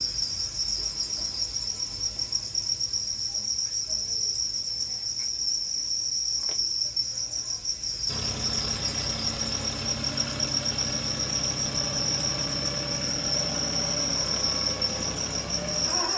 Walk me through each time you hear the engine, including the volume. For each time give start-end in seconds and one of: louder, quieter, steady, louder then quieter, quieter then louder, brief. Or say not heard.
8.1-16.1 steady.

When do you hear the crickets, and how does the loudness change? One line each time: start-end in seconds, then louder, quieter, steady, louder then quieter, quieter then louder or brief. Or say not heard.
0.0-16.1 steady.